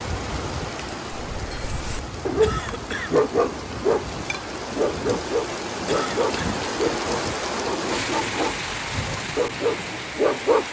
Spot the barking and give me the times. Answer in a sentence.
You can hear the barking from 1.1 to 10.6 s.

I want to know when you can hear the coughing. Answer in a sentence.
The coughing can be heard from 2.4 to 3.3 s and from 5.8 to 6.5 s.